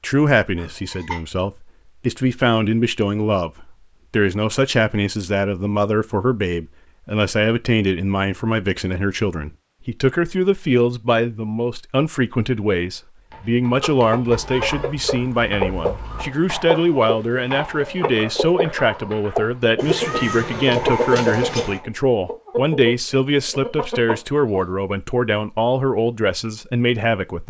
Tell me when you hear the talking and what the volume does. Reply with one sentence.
The talking can be heard from 0.0 to 27.4 s, at a steady volume.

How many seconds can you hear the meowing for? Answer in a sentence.
You can hear the meowing for 5 seconds altogether.